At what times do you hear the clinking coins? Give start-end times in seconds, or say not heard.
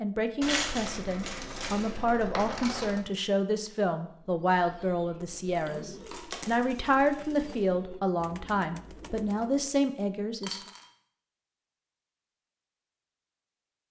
0.4-3.0, 5.5-7.7, 10.4-10.9.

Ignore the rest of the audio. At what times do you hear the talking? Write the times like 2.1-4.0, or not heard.
0.0-10.6.